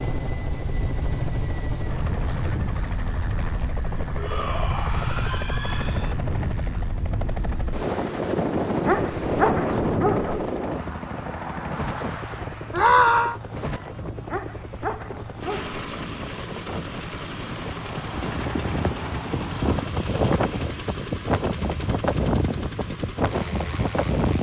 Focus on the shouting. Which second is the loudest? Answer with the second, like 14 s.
13 s.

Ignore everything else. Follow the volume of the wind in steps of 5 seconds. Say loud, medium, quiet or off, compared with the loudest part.
medium, loud, medium, medium, loud.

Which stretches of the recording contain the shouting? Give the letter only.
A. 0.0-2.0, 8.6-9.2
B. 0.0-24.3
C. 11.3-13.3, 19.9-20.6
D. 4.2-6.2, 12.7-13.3
D.